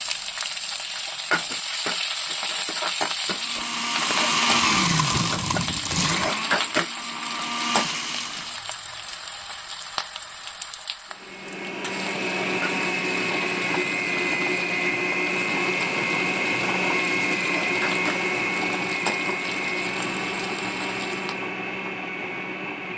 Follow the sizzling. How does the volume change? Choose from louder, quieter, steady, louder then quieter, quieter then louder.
quieter.